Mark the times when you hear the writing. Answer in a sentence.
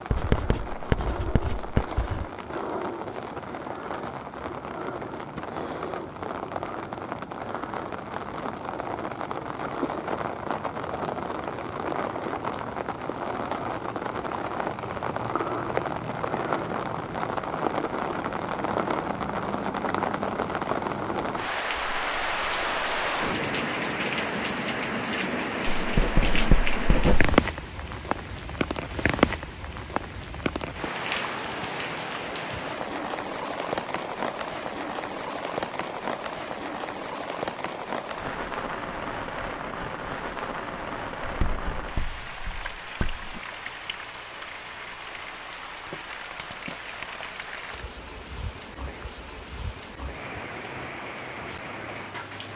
The writing can be heard from 0.1 to 2.2 s, from 25.8 to 27.4 s and from 41.2 to 43.4 s.